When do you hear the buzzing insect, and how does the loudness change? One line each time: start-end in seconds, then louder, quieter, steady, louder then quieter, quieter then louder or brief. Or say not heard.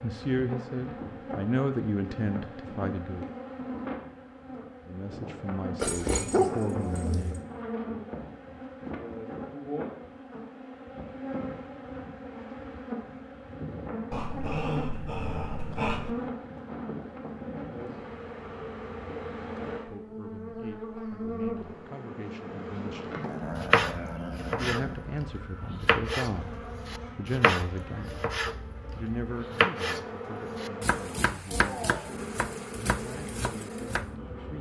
0.0-34.5 steady.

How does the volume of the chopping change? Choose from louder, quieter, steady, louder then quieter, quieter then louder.
quieter.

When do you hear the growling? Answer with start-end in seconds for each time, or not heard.
5.8-7.4, 14.1-16.1, 23.2-25.1.